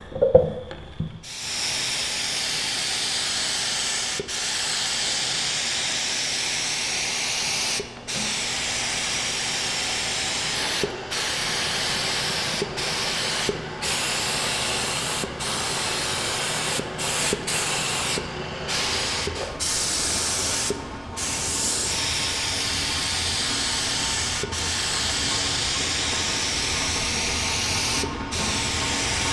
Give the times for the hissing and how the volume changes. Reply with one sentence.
You can hear the hissing from 0.0 to 29.2 s, at a steady volume.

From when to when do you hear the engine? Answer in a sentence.
You can hear the engine from 11.3 to 29.2 s.